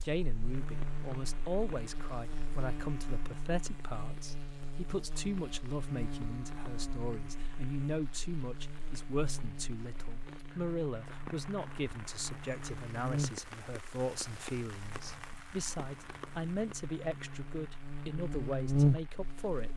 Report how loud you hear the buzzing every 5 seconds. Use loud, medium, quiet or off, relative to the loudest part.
medium, medium, medium, loud.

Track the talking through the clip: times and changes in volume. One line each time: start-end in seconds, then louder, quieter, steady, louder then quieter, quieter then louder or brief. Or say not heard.
0.0-19.7 steady.